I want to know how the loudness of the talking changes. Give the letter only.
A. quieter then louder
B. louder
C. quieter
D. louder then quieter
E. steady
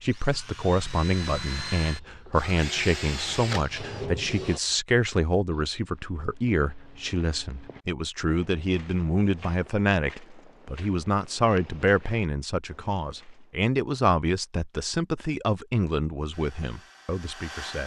E.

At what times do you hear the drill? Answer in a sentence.
You can hear the drill from 0.0 to 4.6 s and from 16.3 to 17.8 s.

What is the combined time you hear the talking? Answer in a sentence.
You can hear the talking for 18 seconds altogether.